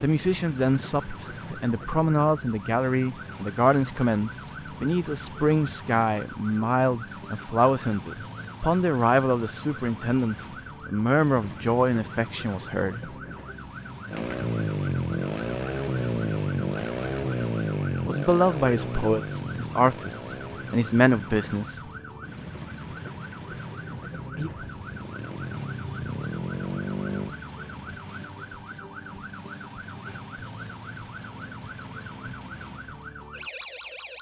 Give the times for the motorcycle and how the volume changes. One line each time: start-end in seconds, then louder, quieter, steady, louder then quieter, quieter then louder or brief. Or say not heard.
14.1-27.4 quieter then louder.